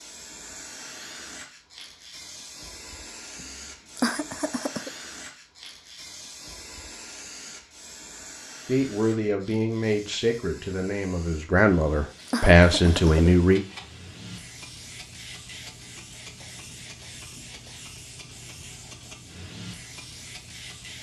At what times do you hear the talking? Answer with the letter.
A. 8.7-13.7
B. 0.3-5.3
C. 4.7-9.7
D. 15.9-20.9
A.